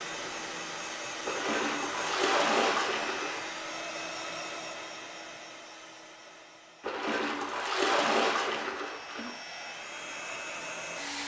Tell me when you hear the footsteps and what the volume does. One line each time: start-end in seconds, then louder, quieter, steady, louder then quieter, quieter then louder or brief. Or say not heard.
not heard.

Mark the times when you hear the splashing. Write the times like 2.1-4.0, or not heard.
1.2-3.5, 6.8-9.3.